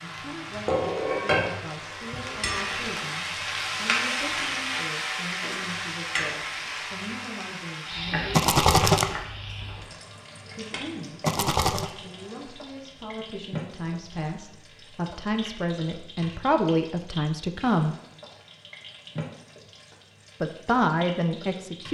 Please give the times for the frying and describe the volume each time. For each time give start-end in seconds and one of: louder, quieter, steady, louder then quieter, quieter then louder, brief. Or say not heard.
0.0-21.8 quieter.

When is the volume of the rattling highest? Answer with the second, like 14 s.
9 s.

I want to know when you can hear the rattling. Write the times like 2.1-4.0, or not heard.
8.3-9.1, 11.2-11.9.